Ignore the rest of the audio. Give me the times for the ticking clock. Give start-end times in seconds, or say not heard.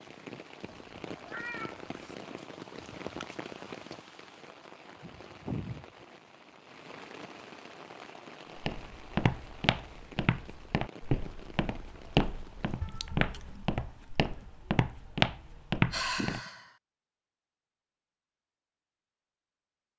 not heard.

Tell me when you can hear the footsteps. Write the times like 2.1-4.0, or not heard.
8.6-16.4.